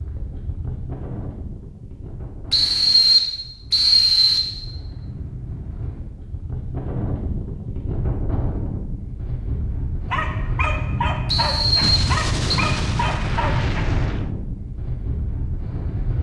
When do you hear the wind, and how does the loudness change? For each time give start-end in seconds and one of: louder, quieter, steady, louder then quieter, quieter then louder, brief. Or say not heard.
0.0-16.1 louder.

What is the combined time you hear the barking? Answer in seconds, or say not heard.
4 s.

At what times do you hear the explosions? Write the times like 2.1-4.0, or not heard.
11.8-14.3.